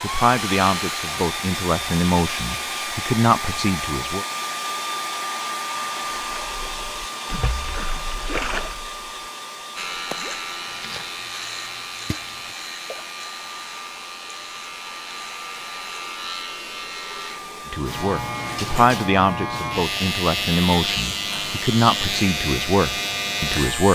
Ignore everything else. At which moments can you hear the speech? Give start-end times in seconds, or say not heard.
0.0-4.2, 17.7-23.8.